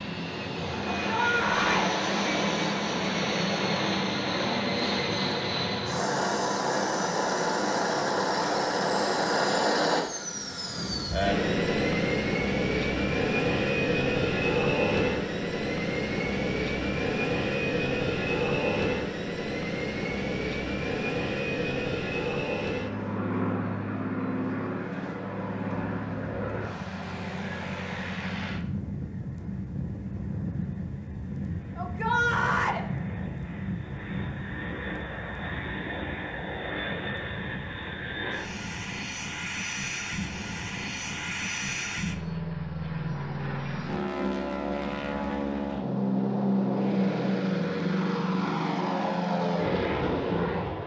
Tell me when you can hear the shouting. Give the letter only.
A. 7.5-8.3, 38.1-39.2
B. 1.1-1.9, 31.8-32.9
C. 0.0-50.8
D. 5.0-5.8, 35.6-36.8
B.